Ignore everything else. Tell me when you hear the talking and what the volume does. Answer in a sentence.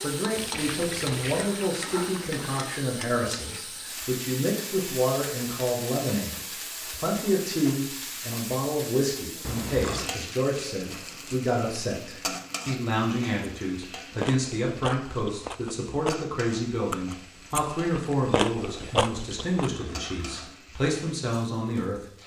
You can hear the talking from 0.0 to 22.0 s, at a steady volume.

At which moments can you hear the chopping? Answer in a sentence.
The chopping can't be heard in this clip.